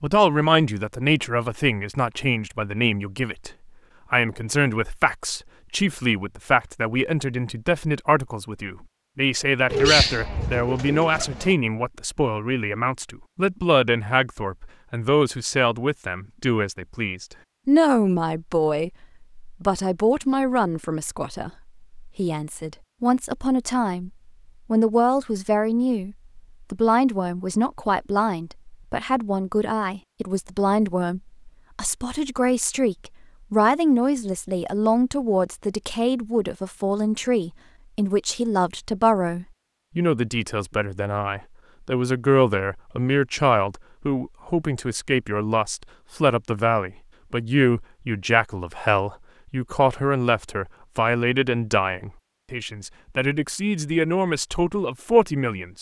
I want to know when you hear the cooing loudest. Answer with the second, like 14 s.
10 s.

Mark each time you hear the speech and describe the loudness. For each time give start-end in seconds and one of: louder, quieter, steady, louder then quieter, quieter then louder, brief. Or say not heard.
0.0-24.1 steady
24.7-55.7 steady.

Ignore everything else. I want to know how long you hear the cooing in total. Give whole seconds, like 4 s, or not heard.
2 s.